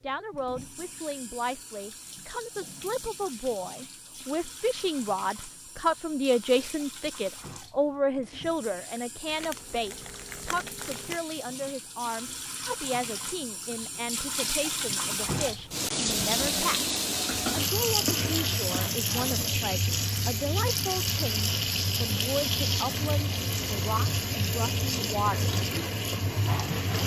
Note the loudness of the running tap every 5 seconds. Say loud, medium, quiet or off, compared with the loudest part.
quiet, quiet, medium, loud, loud, loud.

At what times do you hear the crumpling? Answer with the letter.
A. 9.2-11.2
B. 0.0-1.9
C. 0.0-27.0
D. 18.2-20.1
A.